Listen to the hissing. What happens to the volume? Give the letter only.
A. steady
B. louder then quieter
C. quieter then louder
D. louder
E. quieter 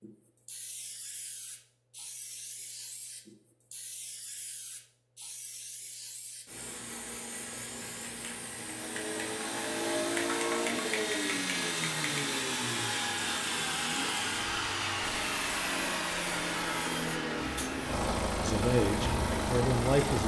D.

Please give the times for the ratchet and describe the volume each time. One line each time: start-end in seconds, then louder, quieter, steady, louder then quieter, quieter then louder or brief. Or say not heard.
not heard.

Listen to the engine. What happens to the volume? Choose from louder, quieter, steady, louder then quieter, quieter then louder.
steady.